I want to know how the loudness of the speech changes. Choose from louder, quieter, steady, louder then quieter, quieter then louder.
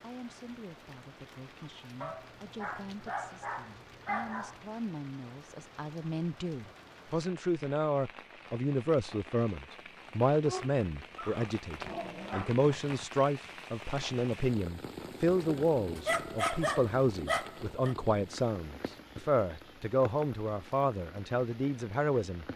louder.